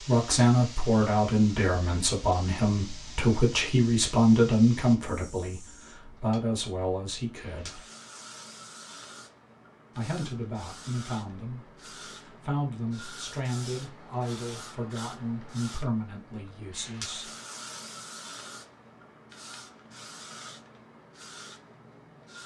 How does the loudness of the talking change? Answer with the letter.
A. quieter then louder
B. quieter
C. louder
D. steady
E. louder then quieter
B.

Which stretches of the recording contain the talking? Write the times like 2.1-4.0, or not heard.
0.1-7.8, 9.9-17.3.